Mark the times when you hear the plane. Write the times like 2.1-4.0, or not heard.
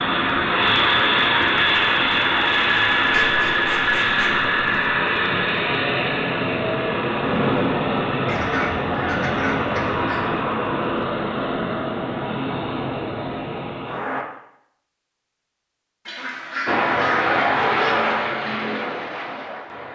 0.0-14.2, 16.6-19.9.